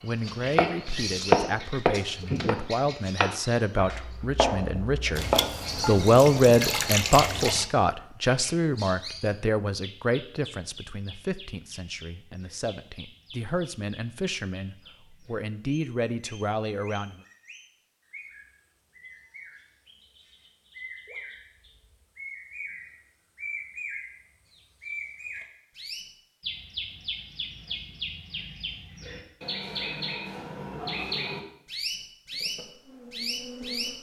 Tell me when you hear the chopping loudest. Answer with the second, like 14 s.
1 s.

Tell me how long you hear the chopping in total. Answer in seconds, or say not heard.
5 s.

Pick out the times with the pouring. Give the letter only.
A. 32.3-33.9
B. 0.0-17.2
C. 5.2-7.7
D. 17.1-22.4
C.